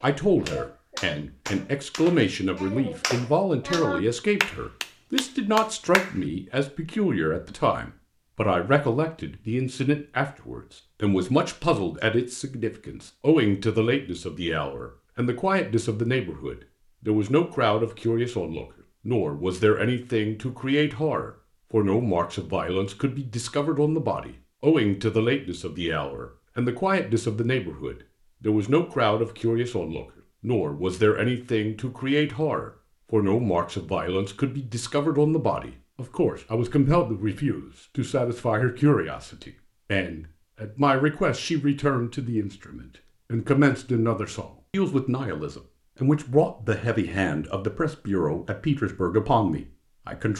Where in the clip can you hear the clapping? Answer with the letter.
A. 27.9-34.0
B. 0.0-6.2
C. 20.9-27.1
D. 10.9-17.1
B.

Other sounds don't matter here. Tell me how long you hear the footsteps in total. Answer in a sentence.
The footsteps can't be heard in this clip.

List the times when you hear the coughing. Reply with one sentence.
You can't hear the coughing here.